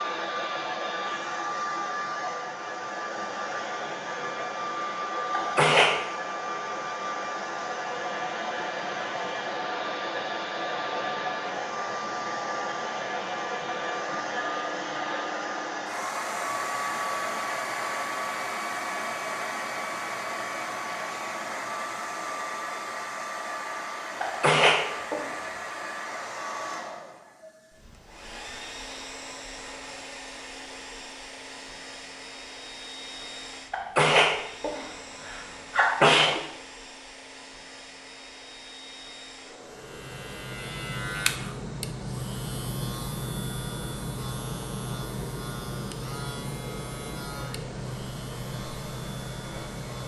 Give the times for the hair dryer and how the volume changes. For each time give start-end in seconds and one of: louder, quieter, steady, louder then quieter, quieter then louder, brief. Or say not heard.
0.0-50.0 quieter.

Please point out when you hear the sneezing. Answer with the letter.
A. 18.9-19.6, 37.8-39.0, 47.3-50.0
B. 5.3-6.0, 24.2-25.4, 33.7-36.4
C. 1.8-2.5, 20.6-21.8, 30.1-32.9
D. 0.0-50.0
B.